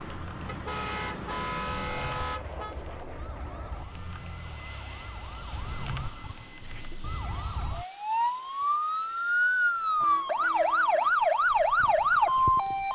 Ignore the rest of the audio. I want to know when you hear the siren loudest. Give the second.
12 s.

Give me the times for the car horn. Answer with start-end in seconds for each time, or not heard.
0.5-2.8, 10.0-11.1.